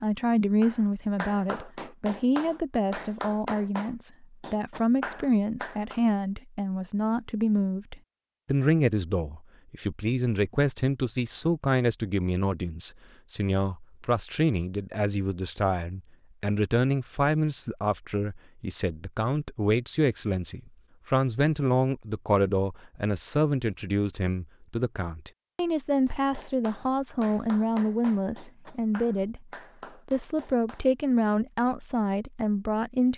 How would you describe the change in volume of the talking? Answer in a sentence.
The volume of the talking stays about the same.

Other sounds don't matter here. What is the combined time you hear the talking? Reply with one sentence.
The talking can be heard for 33 seconds in total.